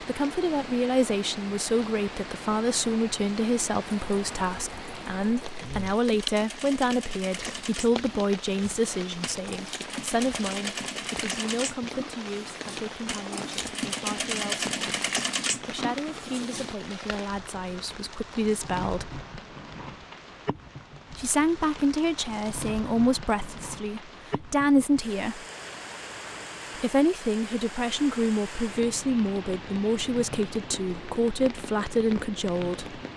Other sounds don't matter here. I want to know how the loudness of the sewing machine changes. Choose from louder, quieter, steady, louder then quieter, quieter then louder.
louder.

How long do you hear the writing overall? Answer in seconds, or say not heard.
not heard.